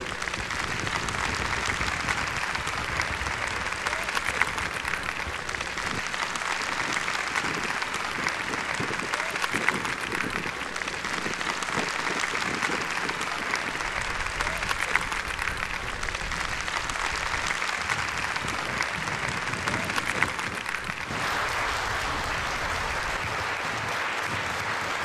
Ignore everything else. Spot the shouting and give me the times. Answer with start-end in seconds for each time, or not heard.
not heard.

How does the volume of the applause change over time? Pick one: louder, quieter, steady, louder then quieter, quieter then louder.
steady.